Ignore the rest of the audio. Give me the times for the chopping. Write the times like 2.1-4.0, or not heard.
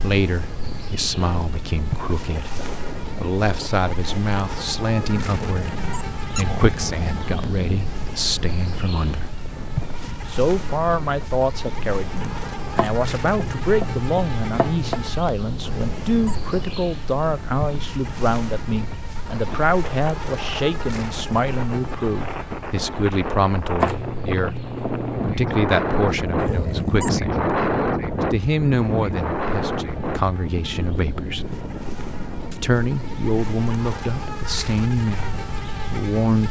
12.8-15.0, 23.8-25.4.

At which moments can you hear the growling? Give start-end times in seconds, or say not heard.
5.3-7.9, 15.6-16.5, 26.4-27.2.